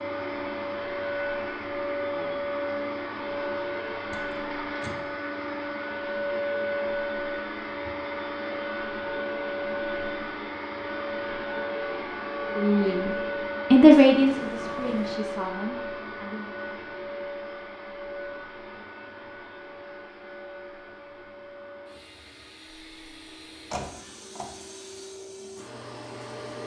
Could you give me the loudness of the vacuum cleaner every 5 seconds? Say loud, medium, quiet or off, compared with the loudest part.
loud, loud, loud, medium, quiet, medium.